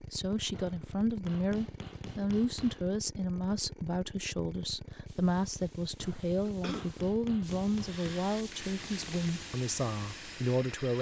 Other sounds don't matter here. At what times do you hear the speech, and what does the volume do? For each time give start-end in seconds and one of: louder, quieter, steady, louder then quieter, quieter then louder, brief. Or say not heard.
0.0-10.9 steady.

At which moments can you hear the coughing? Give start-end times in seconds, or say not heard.
6.5-6.9.